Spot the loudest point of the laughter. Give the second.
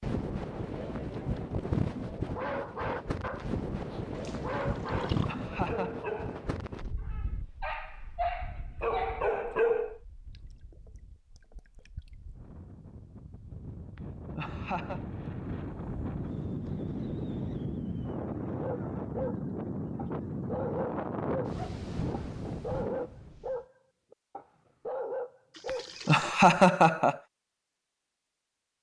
27 s.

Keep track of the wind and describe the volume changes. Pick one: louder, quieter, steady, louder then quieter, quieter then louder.
quieter then louder.